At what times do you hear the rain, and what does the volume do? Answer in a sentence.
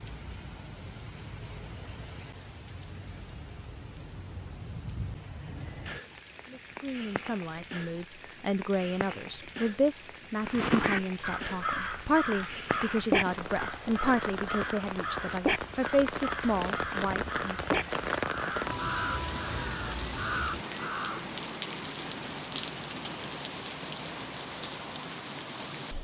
The rain can be heard from 0.0 to 25.9 s, getting louder.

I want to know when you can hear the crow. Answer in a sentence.
You can hear the crow from 10.4 to 21.2 s.